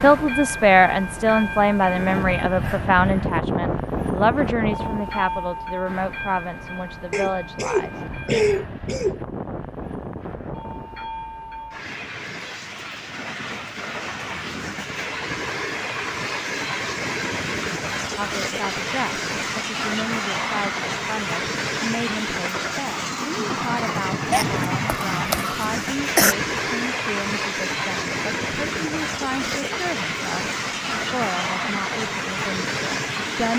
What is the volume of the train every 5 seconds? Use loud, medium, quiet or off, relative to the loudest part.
loud, medium, medium, loud, loud, loud, loud.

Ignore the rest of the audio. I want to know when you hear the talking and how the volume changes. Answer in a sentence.
You can hear the talking from 0.0 to 8.1 s, getting quieter; and from 18.1 to 33.5 s, at a steady volume.